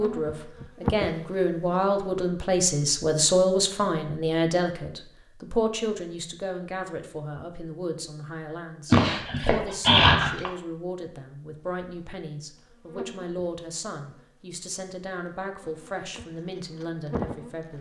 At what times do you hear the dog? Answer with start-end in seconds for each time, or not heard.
8.9-10.5.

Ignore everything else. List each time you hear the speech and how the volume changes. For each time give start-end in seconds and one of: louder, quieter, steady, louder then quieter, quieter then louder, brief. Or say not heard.
0.0-17.7 quieter.